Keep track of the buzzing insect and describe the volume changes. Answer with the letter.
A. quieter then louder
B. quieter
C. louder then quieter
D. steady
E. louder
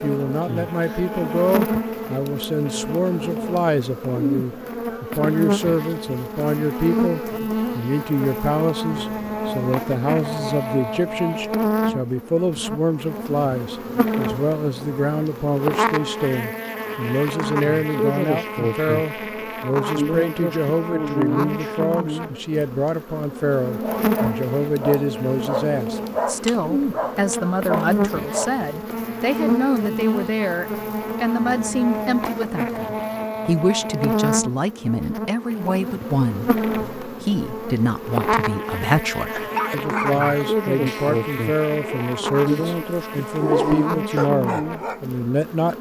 D.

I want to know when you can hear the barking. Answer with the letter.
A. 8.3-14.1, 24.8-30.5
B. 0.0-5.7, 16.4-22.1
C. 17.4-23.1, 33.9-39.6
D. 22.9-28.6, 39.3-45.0
D.